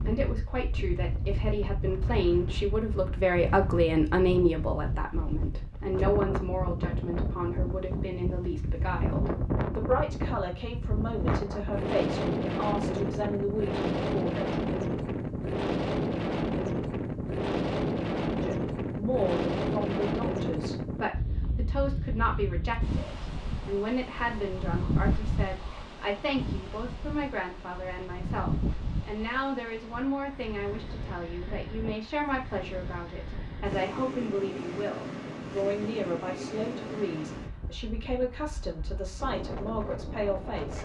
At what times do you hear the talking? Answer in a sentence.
You can hear the talking from 0.0 to 14.6 s and from 18.4 to 40.7 s.